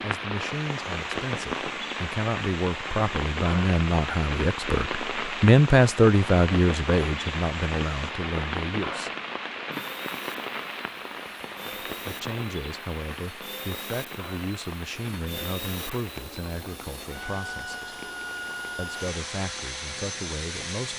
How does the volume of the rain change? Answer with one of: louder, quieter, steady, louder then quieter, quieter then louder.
quieter.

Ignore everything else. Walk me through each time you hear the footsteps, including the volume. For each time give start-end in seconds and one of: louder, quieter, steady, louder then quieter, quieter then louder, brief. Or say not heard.
not heard.